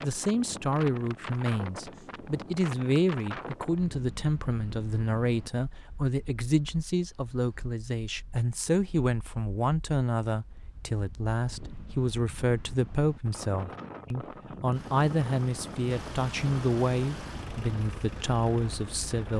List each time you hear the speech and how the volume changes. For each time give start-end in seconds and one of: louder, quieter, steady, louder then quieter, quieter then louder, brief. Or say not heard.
0.0-19.3 steady.